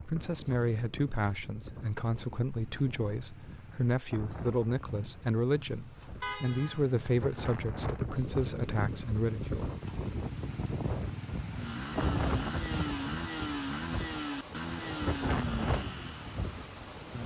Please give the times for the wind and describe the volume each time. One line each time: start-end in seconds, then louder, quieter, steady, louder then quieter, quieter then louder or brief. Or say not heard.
0.0-17.2 louder.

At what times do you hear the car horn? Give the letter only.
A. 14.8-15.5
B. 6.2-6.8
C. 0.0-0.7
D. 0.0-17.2
B.